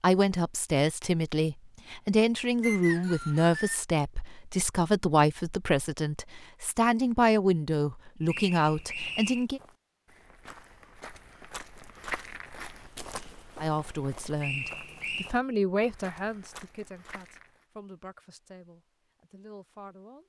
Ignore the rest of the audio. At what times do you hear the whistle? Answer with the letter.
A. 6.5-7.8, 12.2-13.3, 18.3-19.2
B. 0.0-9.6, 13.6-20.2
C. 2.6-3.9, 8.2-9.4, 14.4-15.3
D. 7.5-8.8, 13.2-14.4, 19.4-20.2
C.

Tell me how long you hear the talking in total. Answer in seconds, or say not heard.
16 s.